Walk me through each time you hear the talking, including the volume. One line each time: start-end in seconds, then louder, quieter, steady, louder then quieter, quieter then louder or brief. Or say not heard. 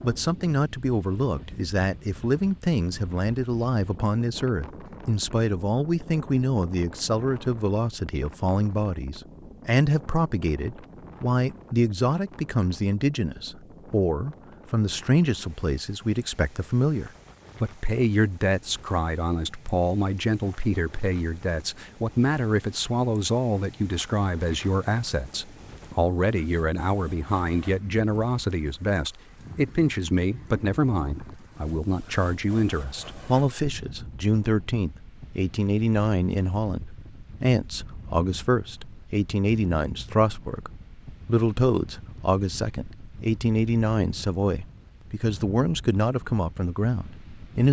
0.0-47.6 steady.